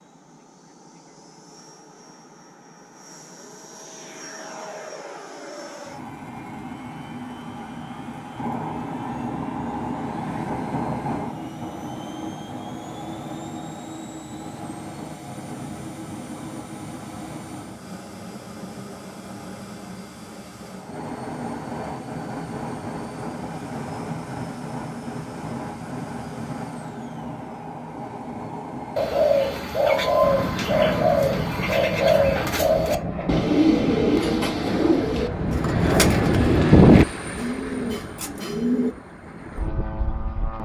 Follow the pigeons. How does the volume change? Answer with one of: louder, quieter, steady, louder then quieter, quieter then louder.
quieter.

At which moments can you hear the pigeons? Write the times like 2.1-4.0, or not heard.
28.9-39.0.